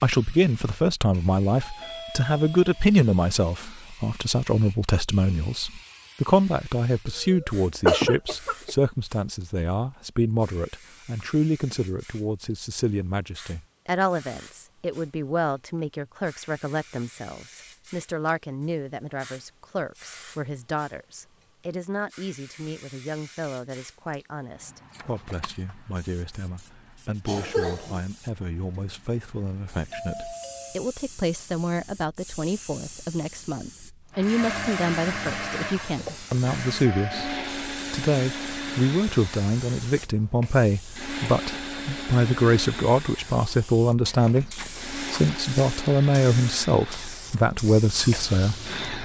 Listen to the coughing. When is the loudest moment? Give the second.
8 s.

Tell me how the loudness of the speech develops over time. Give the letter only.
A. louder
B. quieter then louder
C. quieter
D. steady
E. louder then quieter
B.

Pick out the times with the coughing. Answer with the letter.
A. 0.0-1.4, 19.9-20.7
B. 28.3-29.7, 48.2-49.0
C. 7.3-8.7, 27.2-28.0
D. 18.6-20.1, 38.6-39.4
C.